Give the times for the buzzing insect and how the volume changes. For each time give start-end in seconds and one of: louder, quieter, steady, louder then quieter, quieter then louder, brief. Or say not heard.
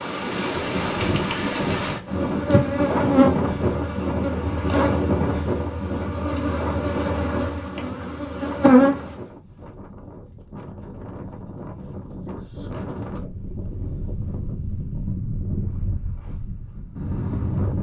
2.0-9.2 quieter then louder.